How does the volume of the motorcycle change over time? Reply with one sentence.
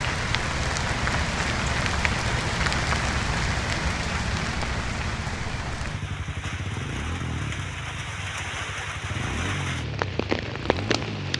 The volume of the motorcycle stays about the same.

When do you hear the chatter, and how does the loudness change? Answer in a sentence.
The chatter can't be heard in this clip.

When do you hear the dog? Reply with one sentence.
The dog can't be heard in this clip.